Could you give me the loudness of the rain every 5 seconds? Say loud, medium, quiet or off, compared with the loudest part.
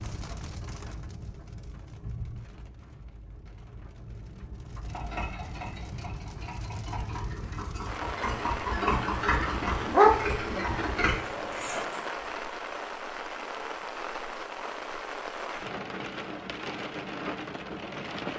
medium, loud, loud, loud.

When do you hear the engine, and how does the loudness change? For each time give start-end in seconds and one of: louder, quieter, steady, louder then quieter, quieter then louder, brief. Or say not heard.
4.8-12.1 louder.